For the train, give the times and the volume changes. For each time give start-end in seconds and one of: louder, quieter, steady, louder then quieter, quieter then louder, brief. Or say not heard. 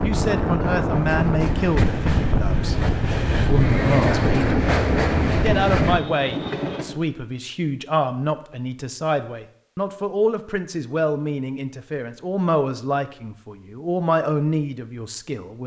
0.0-7.0 steady.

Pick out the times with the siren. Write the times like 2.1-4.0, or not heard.
not heard.